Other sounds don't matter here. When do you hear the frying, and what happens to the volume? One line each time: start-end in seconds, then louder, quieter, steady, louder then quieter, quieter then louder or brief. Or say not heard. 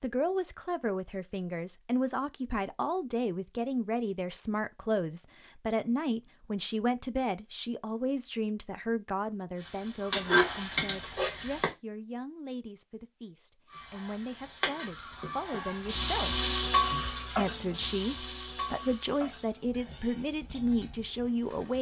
9.6-11.8 brief
13.7-21.7 louder then quieter.